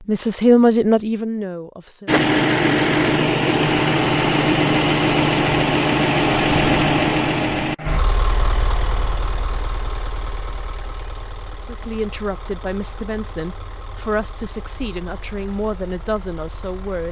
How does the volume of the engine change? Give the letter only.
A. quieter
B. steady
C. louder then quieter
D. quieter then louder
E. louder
A.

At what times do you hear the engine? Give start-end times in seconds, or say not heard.
2.0-17.0.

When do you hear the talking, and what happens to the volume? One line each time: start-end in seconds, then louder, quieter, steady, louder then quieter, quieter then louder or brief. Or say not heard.
0.1-2.1 brief
11.7-17.0 steady.